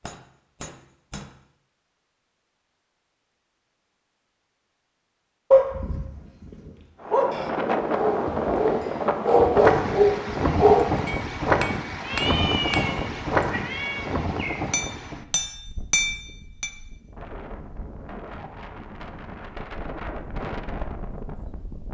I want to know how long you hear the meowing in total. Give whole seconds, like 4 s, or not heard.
3 s.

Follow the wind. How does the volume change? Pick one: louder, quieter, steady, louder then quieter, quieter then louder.
quieter then louder.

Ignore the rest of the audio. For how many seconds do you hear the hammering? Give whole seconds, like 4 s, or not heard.
5 s.